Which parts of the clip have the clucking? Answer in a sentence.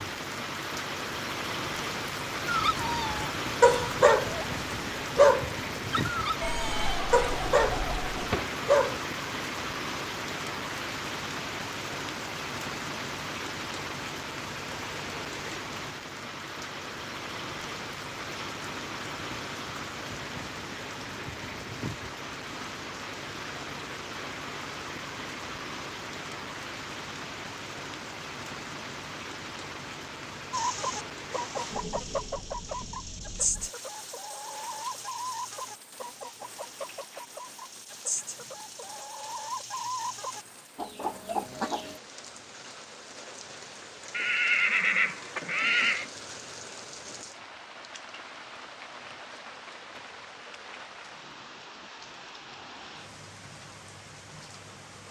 The clucking can be heard from 30.5 to 42.0 s.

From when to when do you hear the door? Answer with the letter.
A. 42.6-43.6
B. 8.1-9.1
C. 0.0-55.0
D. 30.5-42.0
B.